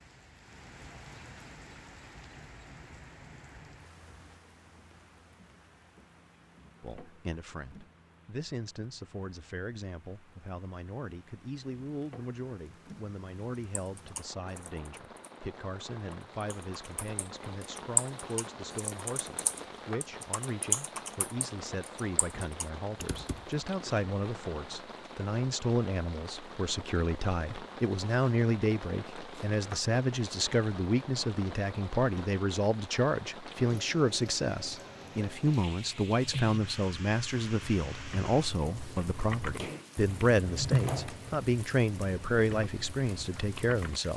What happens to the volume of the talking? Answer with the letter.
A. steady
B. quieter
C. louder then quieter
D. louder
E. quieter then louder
D.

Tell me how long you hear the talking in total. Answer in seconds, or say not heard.
37 s.